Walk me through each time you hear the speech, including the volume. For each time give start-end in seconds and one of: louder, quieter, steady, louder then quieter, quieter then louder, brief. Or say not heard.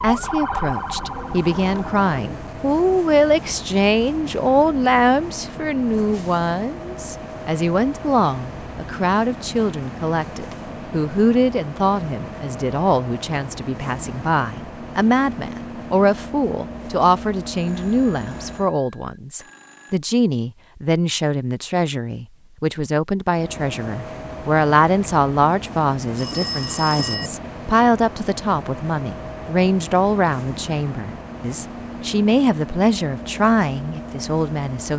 0.0-34.9 steady.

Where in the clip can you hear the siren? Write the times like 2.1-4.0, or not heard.
0.0-2.0.